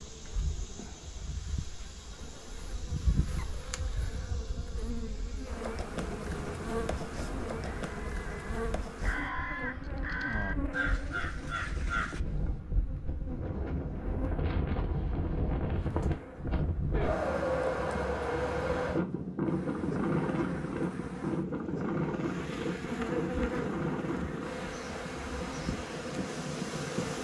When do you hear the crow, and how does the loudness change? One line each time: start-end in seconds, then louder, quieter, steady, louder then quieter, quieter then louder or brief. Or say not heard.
7.7-12.6 louder.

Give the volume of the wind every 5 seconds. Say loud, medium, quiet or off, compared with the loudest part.
quiet, quiet, medium, loud, loud, medium.